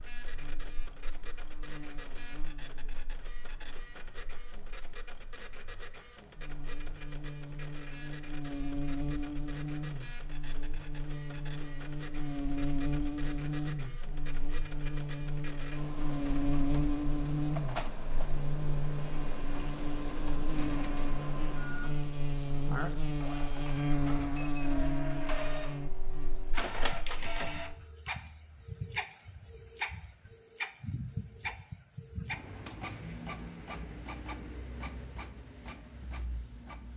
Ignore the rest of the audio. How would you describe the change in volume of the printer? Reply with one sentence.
The loudness of the printer goes up.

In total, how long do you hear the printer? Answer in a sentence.
You can hear the printer for 37 seconds altogether.